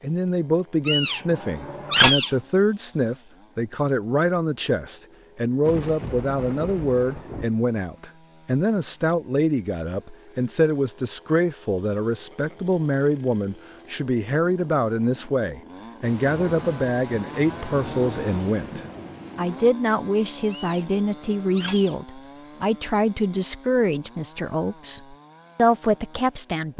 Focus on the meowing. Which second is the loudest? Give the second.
2 s.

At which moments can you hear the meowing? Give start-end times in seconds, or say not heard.
0.8-2.3, 20.5-21.9.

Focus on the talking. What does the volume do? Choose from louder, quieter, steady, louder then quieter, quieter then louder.
steady.